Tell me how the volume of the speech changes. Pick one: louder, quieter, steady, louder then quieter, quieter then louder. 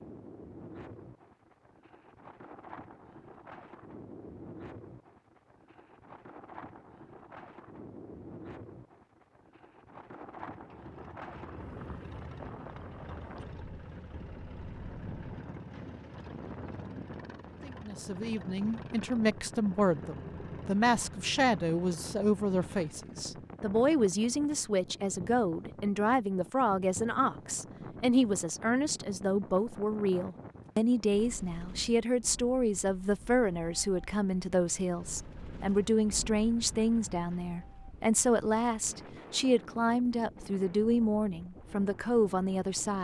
steady.